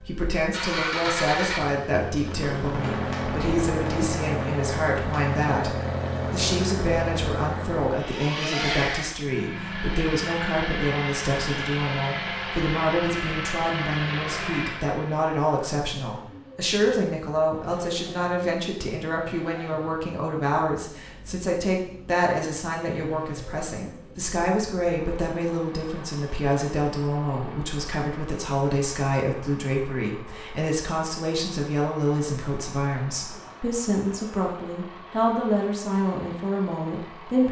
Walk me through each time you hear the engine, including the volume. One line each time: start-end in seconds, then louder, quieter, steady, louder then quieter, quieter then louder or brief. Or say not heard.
0.0-37.4 quieter.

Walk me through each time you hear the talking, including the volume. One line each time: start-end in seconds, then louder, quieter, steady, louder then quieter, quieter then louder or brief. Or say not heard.
0.0-37.4 steady.